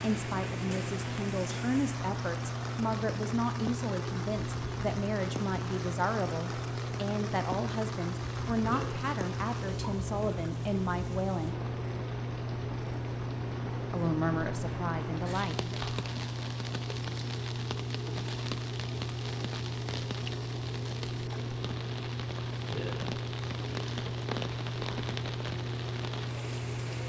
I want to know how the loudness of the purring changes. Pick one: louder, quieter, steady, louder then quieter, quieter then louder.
steady.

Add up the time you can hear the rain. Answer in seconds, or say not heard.
27 s.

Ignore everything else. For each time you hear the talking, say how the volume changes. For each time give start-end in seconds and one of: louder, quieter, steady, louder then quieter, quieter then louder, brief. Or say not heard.
0.0-11.6 steady
13.9-15.8 brief.